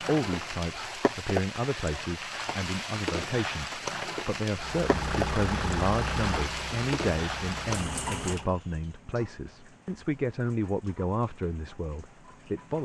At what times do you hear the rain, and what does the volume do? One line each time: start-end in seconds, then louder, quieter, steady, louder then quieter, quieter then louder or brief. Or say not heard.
0.0-12.8 quieter.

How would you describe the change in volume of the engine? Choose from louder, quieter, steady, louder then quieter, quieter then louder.
quieter.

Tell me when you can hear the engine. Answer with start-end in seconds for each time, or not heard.
4.5-8.7.